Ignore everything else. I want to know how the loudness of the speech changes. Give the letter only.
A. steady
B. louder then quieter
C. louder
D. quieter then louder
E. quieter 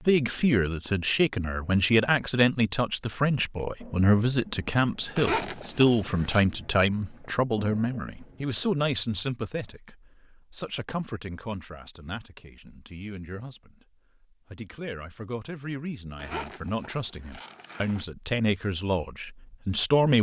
D.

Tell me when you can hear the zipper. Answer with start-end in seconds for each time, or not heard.
5.2-6.5, 16.1-18.1.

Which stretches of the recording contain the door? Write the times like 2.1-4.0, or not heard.
not heard.